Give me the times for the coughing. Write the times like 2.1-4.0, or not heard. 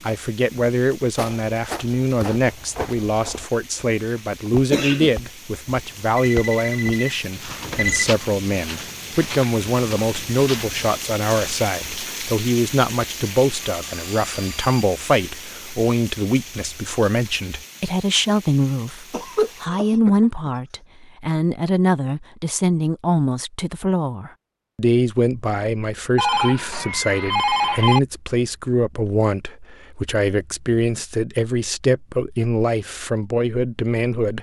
4.7-5.2, 19.1-20.5.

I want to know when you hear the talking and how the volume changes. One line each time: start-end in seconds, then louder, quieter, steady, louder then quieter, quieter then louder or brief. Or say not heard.
0.0-34.3 steady.